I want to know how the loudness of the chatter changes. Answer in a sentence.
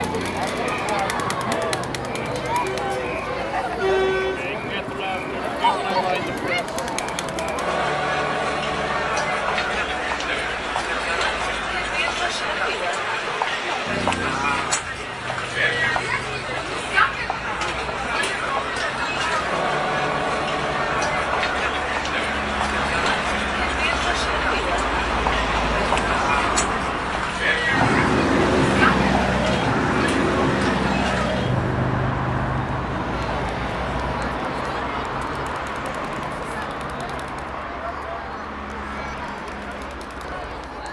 The loudness of the chatter goes down.